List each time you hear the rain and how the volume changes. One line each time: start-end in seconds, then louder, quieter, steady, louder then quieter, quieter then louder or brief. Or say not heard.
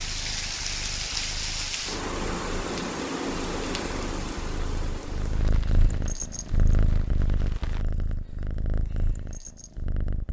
0.0-7.8 quieter.